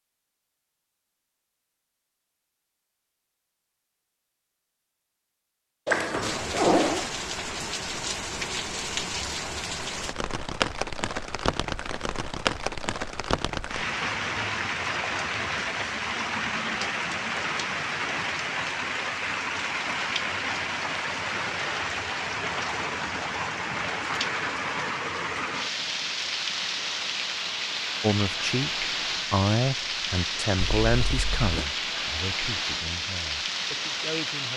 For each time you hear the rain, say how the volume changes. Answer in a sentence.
You can hear the rain from 6.2 to 34.5 s, at a steady volume.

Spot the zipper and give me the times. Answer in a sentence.
You can hear the zipper from 5.8 to 7.1 s and from 30.6 to 31.6 s.